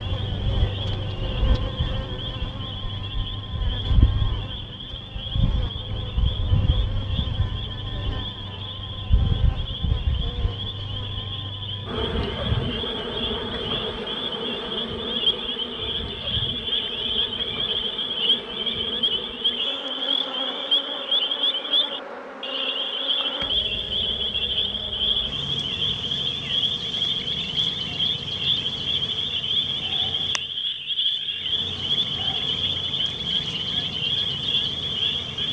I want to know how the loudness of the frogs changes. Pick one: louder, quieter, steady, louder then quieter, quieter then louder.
louder.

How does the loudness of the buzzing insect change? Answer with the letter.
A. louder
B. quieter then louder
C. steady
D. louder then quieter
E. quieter
E.